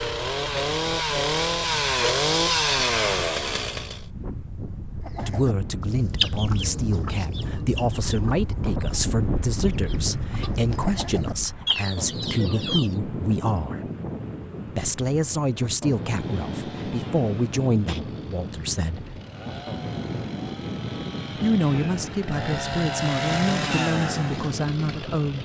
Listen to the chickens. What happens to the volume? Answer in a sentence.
The loudness of the chickens goes down, then up.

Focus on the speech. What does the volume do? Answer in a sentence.
The volume of the speech stays about the same.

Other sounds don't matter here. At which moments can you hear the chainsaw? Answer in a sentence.
The chainsaw can be heard from 0.0 to 4.0 s and from 16.0 to 25.4 s.